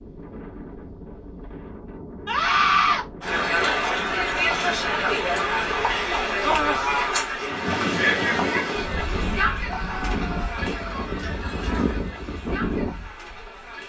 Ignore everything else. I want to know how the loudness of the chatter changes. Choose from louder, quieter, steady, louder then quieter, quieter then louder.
quieter.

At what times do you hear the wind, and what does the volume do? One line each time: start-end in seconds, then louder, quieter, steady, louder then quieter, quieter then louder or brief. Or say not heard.
0.0-13.8 louder.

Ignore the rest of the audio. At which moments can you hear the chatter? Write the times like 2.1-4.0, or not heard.
3.2-13.8.